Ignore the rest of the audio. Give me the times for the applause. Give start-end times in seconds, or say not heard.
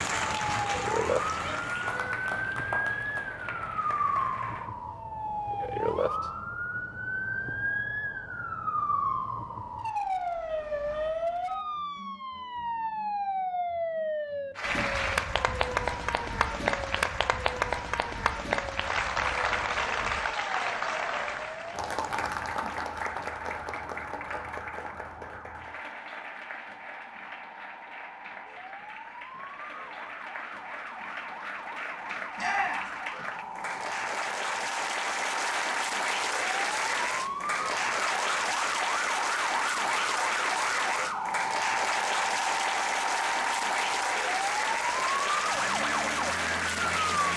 0.0-4.7, 14.6-47.3.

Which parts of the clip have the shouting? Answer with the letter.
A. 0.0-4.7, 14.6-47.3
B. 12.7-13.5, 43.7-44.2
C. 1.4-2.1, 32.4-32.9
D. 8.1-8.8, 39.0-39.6
C.